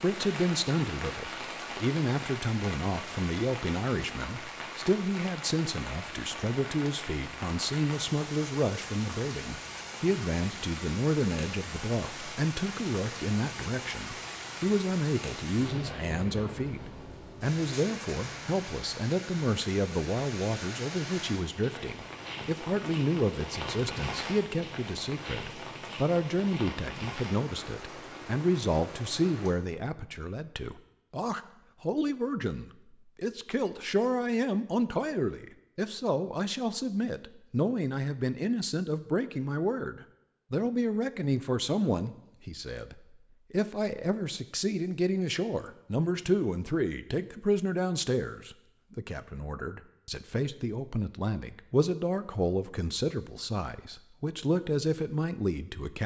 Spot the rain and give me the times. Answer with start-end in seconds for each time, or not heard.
0.0-29.6.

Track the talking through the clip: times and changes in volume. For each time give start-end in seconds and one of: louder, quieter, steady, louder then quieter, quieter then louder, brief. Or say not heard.
0.0-16.8 steady
17.4-56.0 steady.